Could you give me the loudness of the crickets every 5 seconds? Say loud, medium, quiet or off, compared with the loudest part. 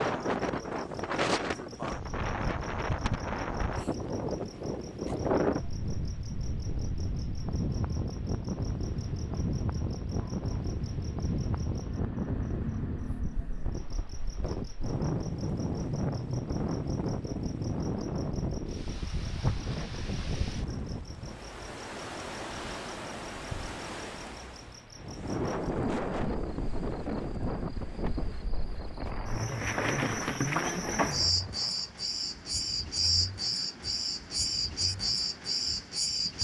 quiet, quiet, quiet, quiet, quiet, medium, loud, loud.